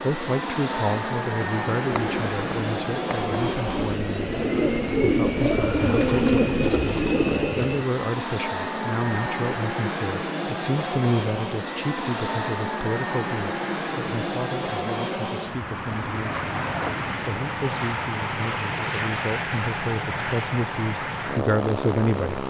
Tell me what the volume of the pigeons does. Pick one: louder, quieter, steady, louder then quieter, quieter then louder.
louder.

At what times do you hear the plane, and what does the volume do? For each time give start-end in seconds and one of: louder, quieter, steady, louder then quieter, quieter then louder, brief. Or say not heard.
0.0-22.4 steady.